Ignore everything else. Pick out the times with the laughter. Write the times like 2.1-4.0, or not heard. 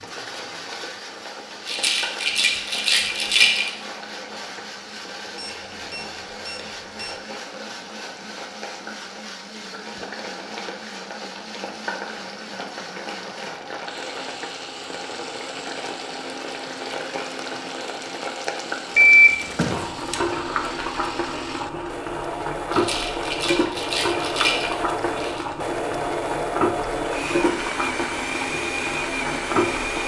not heard.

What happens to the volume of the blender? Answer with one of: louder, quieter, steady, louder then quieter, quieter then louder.
louder.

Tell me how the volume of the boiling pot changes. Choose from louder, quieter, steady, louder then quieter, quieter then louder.
louder.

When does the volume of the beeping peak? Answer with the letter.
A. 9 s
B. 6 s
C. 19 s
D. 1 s
C.